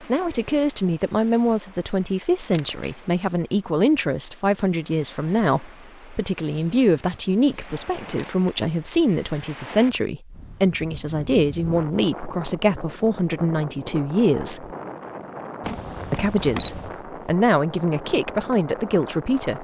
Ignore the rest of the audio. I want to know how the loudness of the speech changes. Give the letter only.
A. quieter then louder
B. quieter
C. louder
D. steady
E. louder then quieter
D.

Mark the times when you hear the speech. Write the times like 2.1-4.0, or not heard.
0.0-14.8, 16.1-19.5.